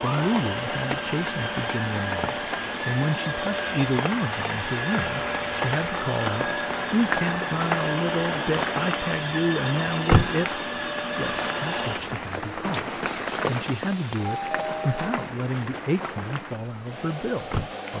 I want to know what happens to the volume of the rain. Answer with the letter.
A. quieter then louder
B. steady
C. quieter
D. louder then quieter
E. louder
D.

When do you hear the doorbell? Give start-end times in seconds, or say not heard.
14.2-15.3.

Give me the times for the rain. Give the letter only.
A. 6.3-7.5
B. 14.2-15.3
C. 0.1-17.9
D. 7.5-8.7
C.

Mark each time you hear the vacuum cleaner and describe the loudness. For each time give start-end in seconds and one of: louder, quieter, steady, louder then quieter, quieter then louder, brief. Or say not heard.
0.0-17.9 quieter.